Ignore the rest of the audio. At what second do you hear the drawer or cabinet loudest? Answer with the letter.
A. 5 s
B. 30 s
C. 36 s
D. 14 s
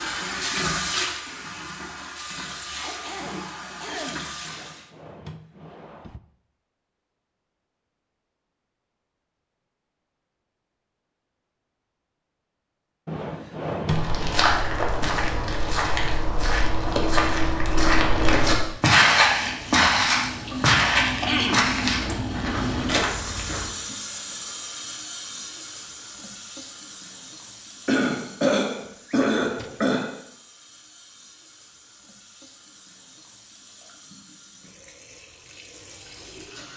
D.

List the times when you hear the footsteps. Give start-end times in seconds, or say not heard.
13.9-23.7.